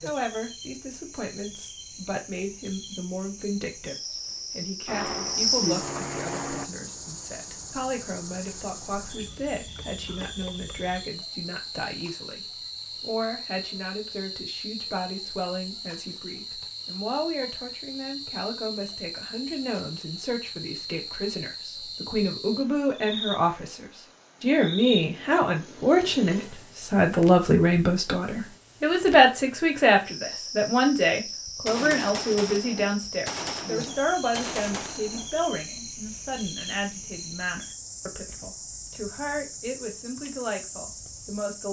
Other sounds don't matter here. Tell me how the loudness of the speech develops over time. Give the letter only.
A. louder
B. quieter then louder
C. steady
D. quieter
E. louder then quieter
E.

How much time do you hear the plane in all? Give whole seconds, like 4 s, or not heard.
2 s.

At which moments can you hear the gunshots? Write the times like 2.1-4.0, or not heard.
31.4-35.4.